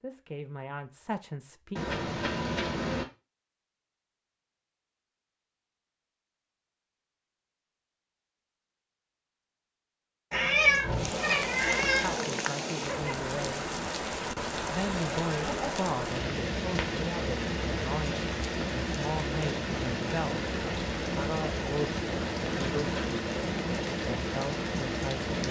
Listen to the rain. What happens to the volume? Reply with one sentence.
The volume of the rain stays about the same.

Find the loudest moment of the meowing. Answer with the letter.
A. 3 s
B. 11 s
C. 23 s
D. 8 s
B.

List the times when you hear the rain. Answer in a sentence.
The rain can be heard from 10.8 to 25.4 s.